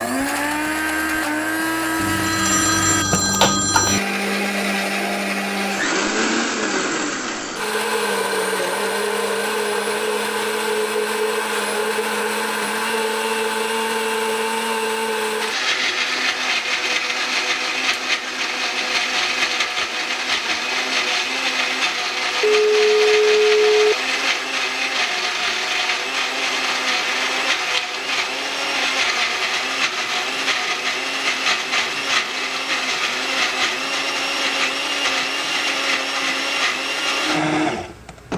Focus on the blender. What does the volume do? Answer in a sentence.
The loudness of the blender stays about the same.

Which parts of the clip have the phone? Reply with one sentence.
The phone can be heard from 2.0 to 4.0 s and from 22.4 to 23.9 s.